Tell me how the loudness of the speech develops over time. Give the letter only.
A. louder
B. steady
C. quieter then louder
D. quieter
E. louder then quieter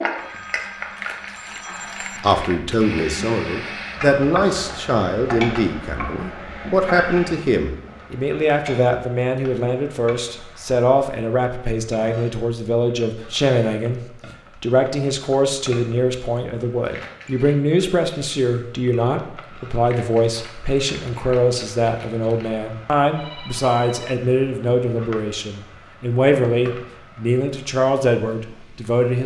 B.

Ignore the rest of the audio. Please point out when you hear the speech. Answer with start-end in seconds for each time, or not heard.
2.2-14.0, 14.6-29.2.